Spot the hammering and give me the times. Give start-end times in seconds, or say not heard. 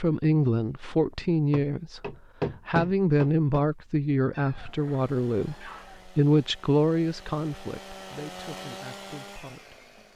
1.5-3.6.